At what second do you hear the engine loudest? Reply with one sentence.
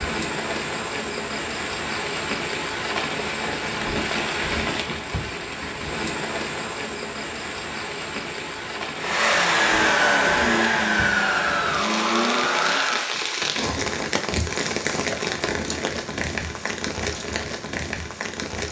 The loudest moment of the engine is at 10 seconds.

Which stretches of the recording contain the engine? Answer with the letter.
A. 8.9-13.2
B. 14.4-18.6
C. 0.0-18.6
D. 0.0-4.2
A.